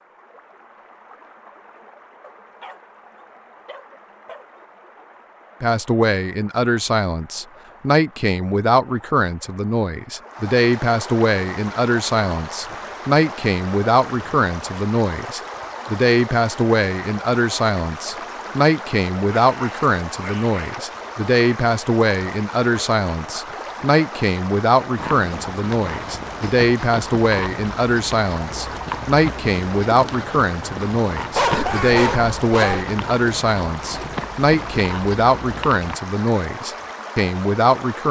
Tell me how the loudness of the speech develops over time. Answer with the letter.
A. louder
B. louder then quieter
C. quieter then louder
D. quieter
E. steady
E.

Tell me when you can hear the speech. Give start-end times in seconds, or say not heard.
5.6-38.0.